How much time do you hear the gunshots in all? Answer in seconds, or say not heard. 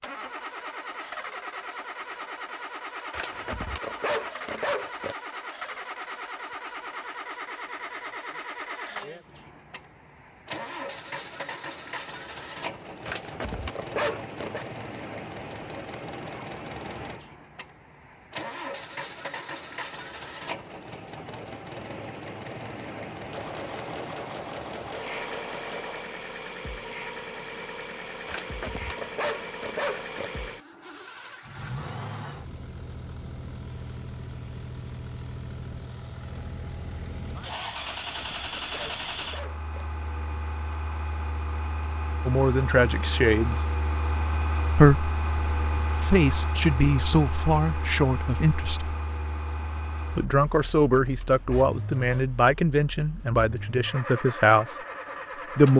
3 s.